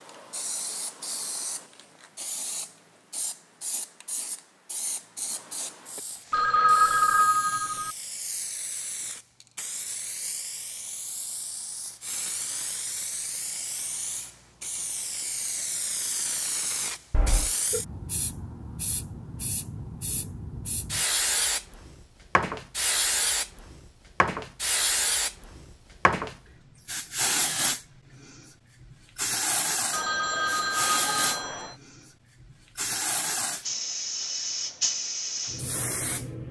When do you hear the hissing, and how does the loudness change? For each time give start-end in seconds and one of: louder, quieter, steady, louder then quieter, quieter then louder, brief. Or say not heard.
0.0-36.4 louder.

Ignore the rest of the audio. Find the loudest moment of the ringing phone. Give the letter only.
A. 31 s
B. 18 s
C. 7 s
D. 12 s
C.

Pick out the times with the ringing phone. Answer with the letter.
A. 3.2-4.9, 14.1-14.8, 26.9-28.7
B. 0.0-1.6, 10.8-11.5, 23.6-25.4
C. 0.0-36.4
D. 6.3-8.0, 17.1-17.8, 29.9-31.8
D.